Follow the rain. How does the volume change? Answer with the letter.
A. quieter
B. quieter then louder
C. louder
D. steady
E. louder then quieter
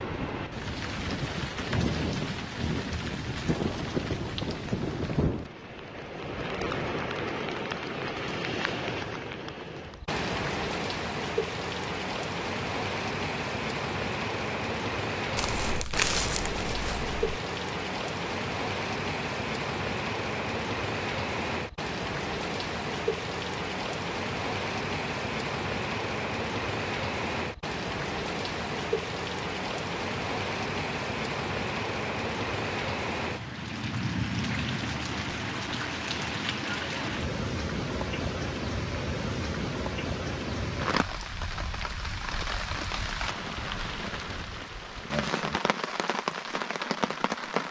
D.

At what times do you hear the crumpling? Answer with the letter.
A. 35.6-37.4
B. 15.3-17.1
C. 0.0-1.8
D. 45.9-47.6
B.